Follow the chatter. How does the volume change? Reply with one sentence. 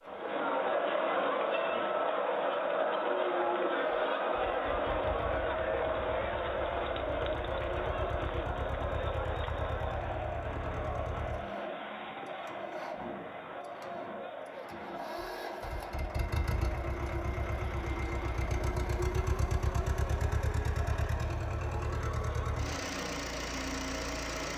The volume of the chatter goes down.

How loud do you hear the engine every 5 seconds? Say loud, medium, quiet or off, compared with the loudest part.
quiet, medium, medium, loud, loud.